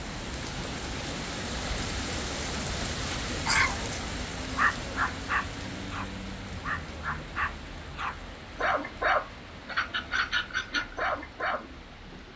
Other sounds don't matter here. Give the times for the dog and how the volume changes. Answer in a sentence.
The dog can be heard from 3.5 to 12.3 s, getting quieter then louder.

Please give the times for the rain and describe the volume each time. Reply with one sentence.
The rain can be heard from 0.0 to 12.3 s, getting quieter.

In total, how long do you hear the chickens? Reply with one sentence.
The chickens can't be heard in this clip.